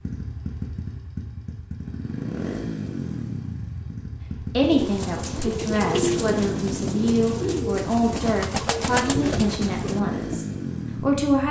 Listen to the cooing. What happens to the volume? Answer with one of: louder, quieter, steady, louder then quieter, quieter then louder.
steady.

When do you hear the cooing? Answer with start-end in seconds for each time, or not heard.
4.7-10.4.